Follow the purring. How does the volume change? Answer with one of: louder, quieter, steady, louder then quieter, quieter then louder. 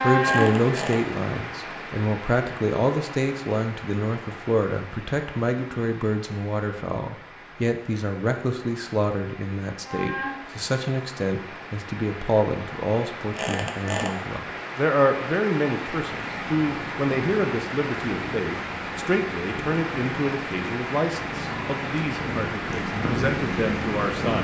louder.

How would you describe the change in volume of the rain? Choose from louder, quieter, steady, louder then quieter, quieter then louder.
quieter then louder.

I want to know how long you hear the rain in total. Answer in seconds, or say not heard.
24 s.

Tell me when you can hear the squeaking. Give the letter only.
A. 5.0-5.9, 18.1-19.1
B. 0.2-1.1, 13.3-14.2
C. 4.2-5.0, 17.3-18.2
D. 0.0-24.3
B.